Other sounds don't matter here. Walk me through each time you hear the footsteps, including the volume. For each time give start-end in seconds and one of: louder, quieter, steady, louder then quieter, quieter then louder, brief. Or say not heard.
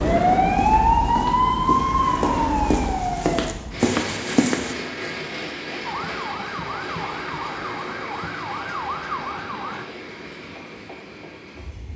0.0-4.8 louder.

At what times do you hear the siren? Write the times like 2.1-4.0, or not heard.
0.0-3.5, 5.8-9.8.